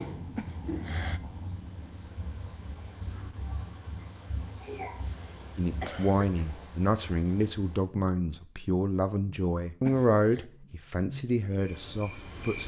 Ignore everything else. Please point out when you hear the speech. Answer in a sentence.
You can hear the speech from 5.5 to 12.6 s.